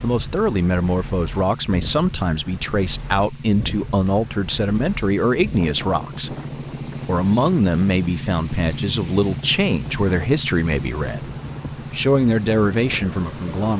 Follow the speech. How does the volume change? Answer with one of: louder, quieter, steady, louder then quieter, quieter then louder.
steady.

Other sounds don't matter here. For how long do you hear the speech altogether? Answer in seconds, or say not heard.
13 s.